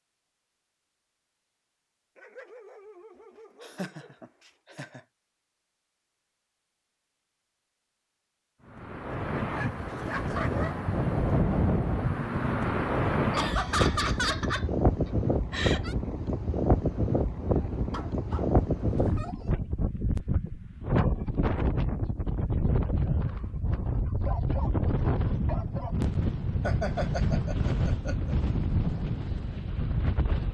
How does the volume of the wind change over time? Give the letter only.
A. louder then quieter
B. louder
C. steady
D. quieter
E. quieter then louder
C.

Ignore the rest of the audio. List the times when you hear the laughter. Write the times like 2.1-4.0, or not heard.
3.6-5.0, 13.3-15.9, 26.6-28.4.